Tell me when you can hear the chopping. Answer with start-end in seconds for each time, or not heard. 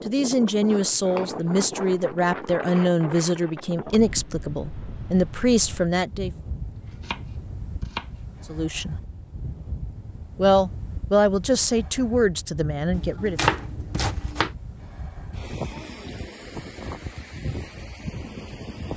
0.9-2.1, 6.8-8.1, 12.9-14.5.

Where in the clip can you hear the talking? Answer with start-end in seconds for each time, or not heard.
0.1-6.3, 8.5-8.9, 10.3-13.4.